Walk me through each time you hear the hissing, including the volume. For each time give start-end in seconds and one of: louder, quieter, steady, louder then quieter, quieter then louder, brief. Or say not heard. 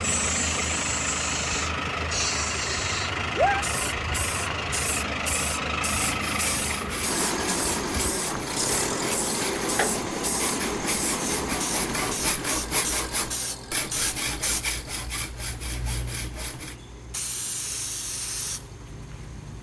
0.0-19.5 quieter.